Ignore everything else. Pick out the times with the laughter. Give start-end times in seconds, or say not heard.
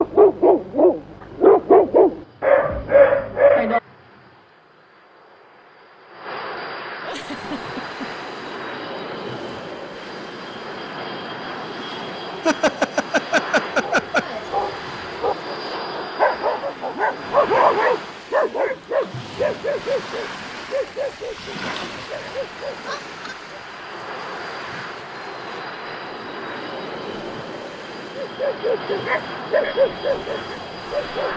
7.0-8.2, 12.4-14.4, 22.9-23.4.